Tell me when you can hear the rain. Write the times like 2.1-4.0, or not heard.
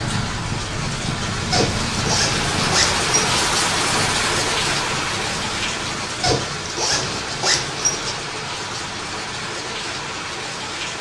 0.0-10.9.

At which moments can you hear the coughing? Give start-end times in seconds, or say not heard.
not heard.